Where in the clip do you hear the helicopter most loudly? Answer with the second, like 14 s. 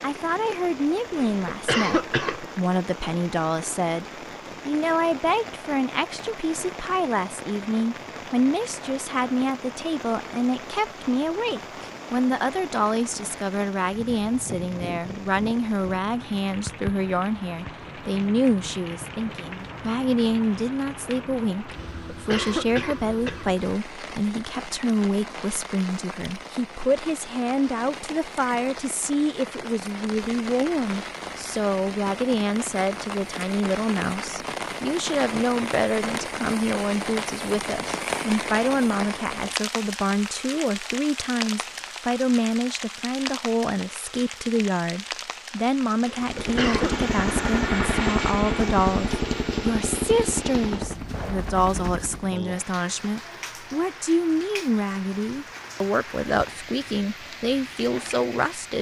48 s.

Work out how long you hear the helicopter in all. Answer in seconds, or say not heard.
6 s.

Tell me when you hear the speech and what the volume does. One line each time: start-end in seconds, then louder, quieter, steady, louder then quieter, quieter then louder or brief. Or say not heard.
0.0-58.7 steady.